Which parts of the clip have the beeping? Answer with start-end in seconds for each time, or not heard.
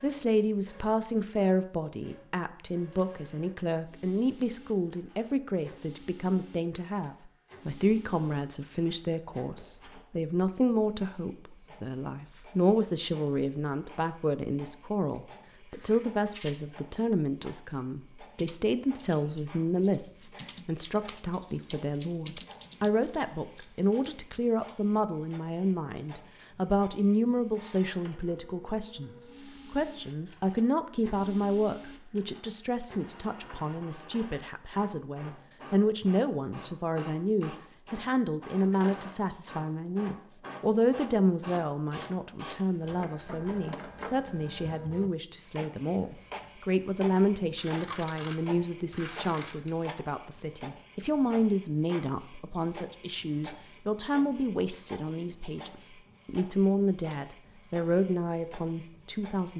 not heard.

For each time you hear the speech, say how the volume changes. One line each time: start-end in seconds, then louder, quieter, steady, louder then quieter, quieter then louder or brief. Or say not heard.
0.0-59.5 steady.